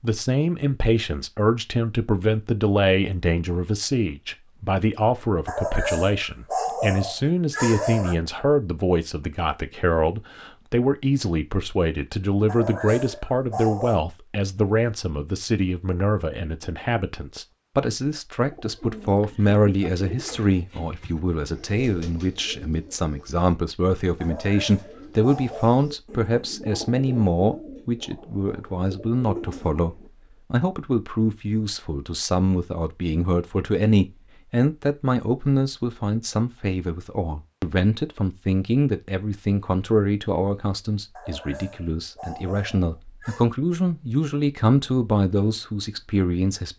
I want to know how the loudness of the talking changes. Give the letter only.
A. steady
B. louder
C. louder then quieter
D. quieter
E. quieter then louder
A.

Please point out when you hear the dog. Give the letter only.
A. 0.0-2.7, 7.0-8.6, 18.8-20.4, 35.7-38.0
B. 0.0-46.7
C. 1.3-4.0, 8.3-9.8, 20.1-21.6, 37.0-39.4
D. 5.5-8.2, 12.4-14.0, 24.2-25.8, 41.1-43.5
D.